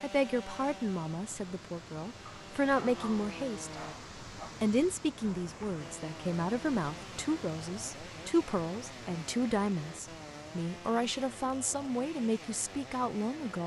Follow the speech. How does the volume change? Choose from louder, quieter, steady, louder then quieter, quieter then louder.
steady.